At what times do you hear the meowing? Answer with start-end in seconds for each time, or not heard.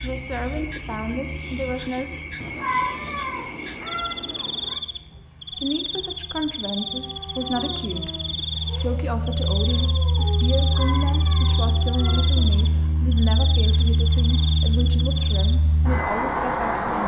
2.4-4.8, 10.6-12.9.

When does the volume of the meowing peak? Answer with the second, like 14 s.
3 s.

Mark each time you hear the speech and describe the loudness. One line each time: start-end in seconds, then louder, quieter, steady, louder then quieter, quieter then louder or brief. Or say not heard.
0.0-2.1 brief
5.5-17.0 steady.